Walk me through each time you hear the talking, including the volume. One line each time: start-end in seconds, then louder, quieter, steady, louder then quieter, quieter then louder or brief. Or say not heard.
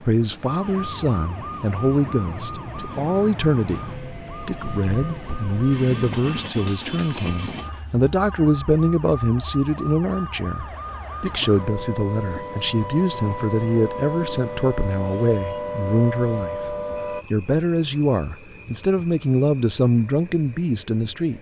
0.0-21.3 steady.